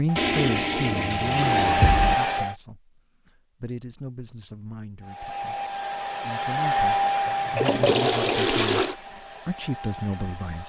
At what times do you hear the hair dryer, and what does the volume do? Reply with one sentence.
You can hear the hair dryer briefly from 0.1 to 2.5 s; and from 5.0 to 10.6 s, getting louder then quieter.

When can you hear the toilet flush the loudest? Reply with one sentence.
The volume of the toilet flush peaks at 8 seconds.